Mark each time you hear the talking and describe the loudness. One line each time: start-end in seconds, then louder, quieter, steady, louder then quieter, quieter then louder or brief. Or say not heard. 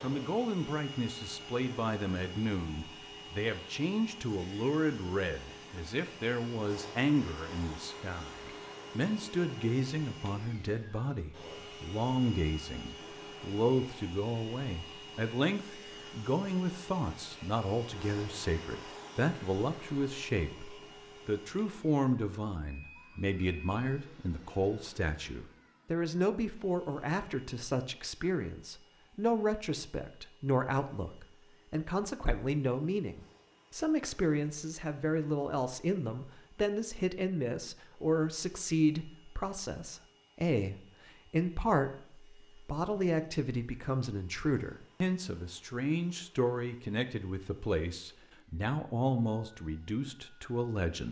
0.0-51.0 steady.